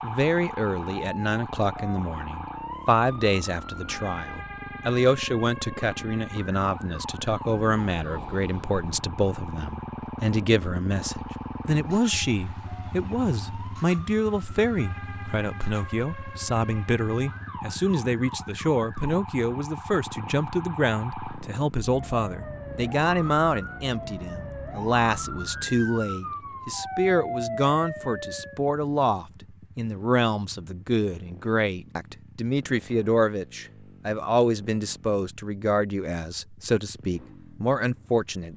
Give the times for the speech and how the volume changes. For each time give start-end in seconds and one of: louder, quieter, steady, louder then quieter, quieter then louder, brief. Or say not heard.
0.0-38.5 steady.